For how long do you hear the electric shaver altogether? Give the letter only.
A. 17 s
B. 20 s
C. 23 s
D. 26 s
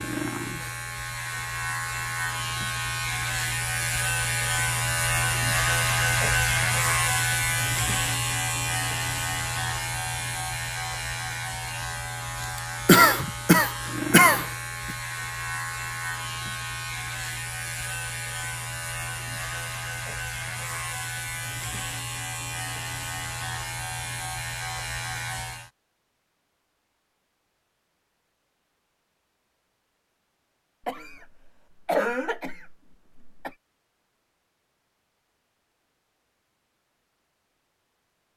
D.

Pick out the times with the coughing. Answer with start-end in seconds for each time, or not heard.
12.8-14.9, 30.9-33.5.